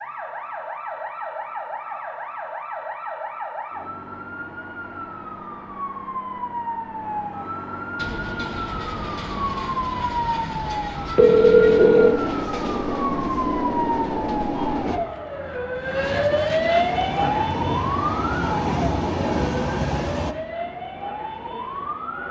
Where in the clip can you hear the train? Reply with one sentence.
You can hear the train from 8.0 to 15.0 s and from 16.9 to 20.4 s.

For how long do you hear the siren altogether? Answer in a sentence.
You can hear the siren for 22 seconds altogether.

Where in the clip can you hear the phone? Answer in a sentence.
The phone can be heard from 11.2 to 12.2 s.